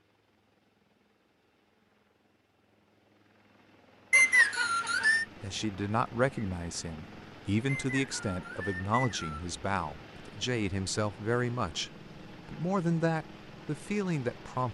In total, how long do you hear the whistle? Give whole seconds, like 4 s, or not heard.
3 s.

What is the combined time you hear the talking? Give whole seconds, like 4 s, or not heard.
9 s.